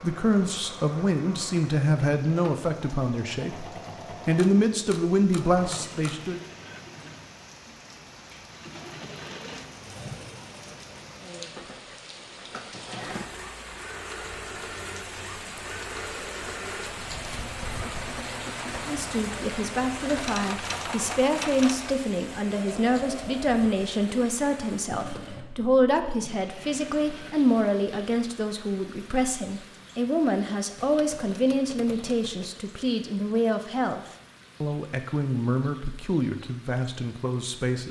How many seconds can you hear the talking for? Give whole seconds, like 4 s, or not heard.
25 s.